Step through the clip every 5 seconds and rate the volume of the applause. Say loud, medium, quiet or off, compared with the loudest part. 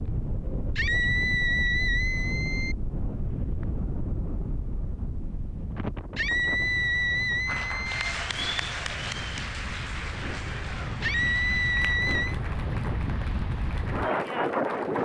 off, loud, medium.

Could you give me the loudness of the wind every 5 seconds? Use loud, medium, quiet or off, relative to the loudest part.
loud, medium, loud.